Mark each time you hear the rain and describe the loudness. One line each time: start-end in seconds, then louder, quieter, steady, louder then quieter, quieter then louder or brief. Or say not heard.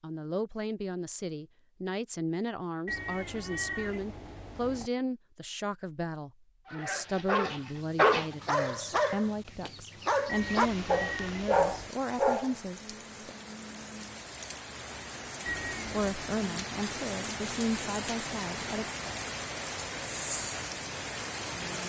10.3-21.8 louder.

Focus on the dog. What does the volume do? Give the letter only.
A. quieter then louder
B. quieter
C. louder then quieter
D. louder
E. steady
A.